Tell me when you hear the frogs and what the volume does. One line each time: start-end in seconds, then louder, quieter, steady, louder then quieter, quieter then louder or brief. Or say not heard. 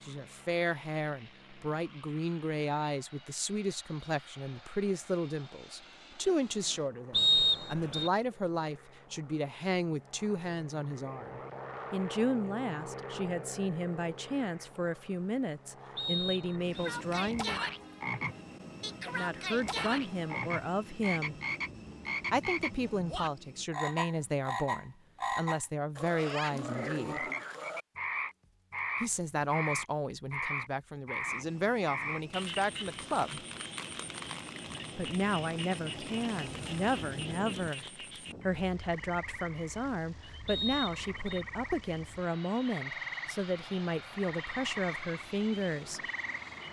16.7-46.6 quieter.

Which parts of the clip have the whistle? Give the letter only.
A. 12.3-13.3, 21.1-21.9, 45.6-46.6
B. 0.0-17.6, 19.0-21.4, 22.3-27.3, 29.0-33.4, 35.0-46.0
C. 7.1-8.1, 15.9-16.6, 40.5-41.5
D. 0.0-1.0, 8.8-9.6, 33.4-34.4
C.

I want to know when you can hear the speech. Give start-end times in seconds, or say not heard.
0.0-17.6, 19.0-21.4, 22.3-27.3, 29.0-33.4, 35.0-46.0.